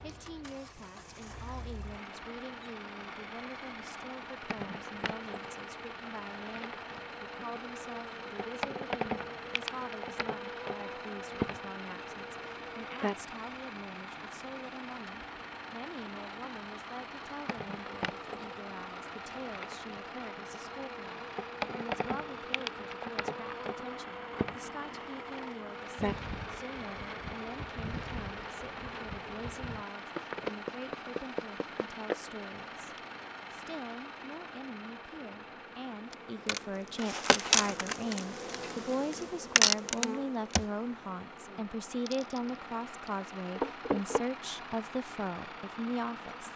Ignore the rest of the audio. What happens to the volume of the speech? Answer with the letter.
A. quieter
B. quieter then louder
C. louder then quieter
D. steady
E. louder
E.